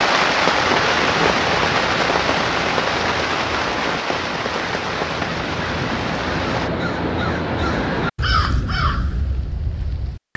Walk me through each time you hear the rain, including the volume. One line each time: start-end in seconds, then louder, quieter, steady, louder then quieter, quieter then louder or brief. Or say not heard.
0.0-6.7 quieter.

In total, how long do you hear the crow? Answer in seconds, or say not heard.
10 s.